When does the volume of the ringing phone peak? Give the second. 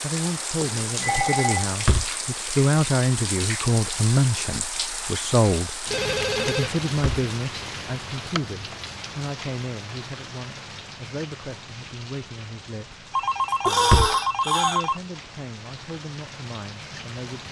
14 s.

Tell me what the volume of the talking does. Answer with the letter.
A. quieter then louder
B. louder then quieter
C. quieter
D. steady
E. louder
C.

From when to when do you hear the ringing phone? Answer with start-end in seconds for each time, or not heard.
0.6-1.6, 5.9-6.7, 13.1-15.0.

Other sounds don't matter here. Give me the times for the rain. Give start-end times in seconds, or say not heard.
0.0-17.4.